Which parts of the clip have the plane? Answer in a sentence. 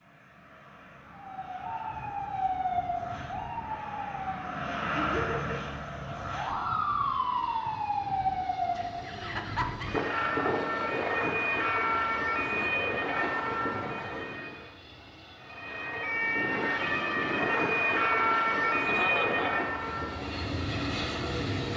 The plane can be heard from 0.0 to 21.7 s.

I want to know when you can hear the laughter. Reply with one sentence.
The laughter can be heard from 5.0 to 5.7 s, from 8.8 to 9.9 s and from 18.9 to 19.6 s.